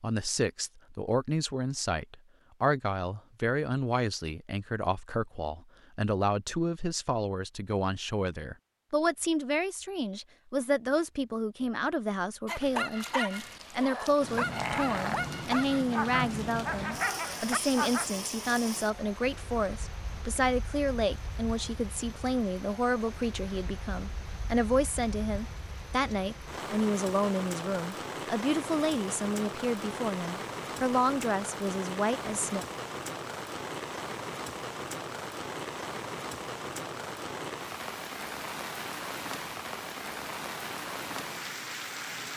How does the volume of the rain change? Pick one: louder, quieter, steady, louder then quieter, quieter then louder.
quieter then louder.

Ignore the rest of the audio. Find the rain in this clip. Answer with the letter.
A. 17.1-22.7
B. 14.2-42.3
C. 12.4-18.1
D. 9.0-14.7
B.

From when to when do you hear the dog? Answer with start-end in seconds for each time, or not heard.
12.4-18.1.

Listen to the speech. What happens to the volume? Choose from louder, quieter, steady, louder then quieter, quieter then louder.
steady.